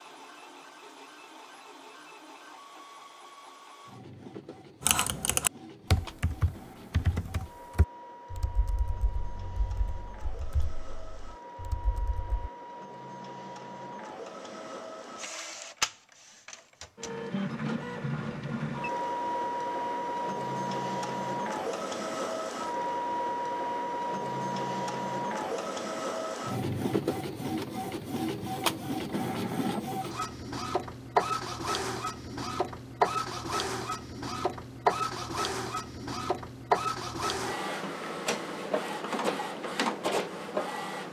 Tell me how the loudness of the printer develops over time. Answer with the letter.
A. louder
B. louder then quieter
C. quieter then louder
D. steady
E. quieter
A.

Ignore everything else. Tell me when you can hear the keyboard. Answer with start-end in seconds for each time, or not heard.
4.8-12.5.